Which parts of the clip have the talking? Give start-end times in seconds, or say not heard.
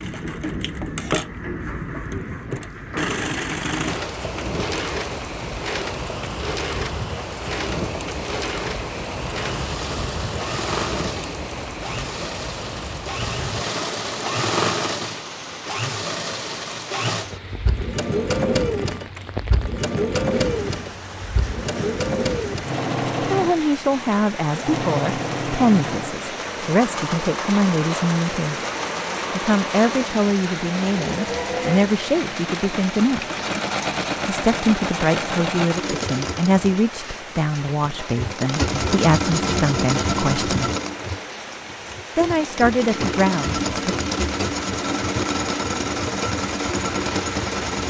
23.2-28.6, 29.4-33.2, 34.2-40.7, 42.1-44.0.